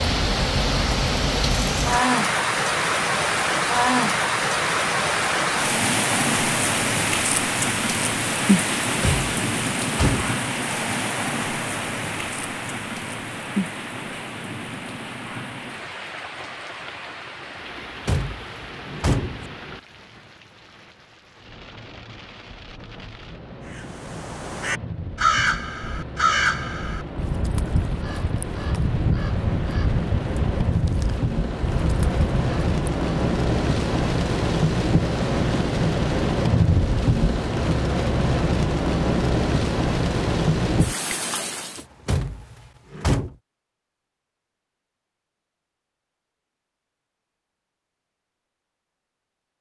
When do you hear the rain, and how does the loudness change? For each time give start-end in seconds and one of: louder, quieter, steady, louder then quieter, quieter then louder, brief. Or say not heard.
0.0-41.9 quieter then louder.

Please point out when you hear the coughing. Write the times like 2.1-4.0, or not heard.
not heard.